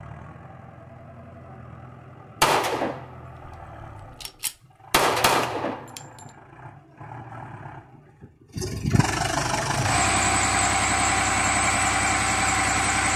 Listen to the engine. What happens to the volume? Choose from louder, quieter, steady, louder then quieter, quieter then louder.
louder.